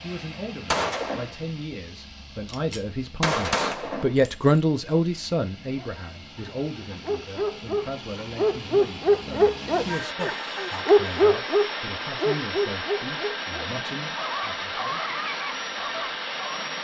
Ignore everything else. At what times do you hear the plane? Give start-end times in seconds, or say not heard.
0.0-16.7.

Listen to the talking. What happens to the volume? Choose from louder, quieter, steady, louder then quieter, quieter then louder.
louder then quieter.